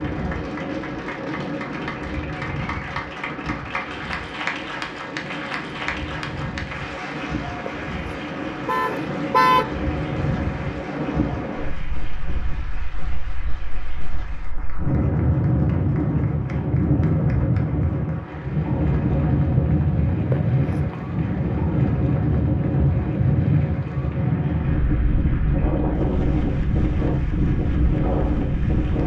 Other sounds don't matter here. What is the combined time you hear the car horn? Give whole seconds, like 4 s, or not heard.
2 s.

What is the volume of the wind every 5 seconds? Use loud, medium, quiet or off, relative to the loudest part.
medium, medium, medium, loud, loud, loud.